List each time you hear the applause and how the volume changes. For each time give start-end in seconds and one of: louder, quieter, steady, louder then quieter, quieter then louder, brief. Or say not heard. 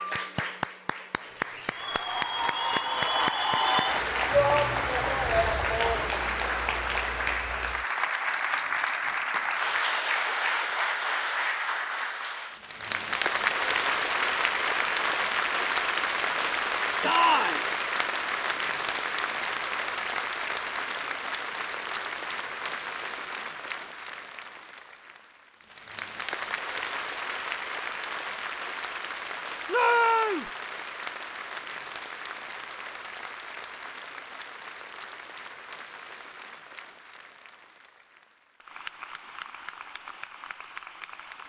0.0-41.4 quieter.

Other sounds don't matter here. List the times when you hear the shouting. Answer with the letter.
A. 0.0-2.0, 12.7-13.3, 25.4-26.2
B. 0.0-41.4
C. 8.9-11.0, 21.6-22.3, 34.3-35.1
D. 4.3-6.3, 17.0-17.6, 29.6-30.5
D.